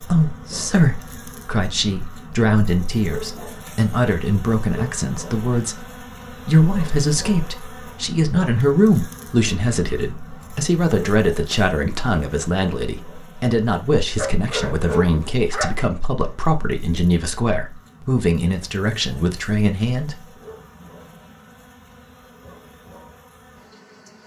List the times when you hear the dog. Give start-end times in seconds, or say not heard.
14.2-15.8.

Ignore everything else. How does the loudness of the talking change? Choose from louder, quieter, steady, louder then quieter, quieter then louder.
steady.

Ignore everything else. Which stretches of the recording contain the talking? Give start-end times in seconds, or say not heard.
0.0-5.8, 6.5-20.1.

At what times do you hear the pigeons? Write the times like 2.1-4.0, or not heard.
not heard.